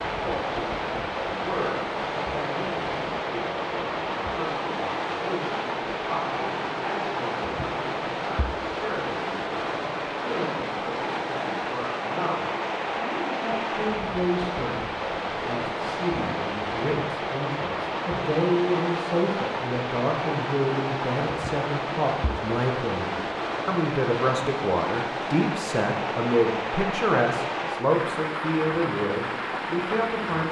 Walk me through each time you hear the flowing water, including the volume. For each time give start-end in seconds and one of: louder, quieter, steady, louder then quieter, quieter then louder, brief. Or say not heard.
0.0-30.4 steady.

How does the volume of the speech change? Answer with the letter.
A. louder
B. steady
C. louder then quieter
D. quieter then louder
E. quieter
A.